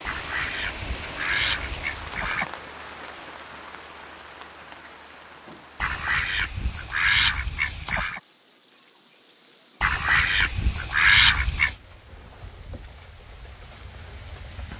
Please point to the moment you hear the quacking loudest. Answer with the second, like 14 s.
11 s.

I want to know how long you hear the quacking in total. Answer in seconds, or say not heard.
7 s.